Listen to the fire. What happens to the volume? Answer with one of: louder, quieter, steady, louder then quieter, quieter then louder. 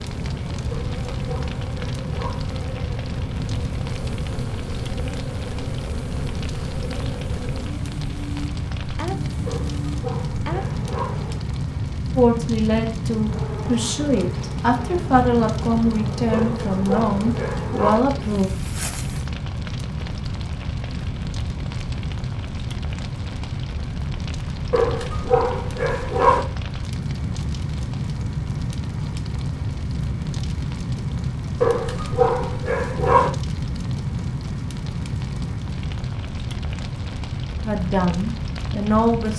steady.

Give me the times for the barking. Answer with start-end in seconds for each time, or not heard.
0.7-2.4, 9.4-11.2, 16.3-18.1, 24.7-26.4, 31.6-33.3.